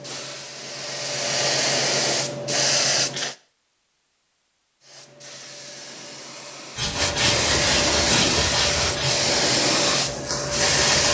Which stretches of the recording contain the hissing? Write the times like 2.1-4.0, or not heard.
0.0-3.4, 4.8-11.0.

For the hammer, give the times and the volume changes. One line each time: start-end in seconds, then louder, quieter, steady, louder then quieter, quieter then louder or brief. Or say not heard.
not heard.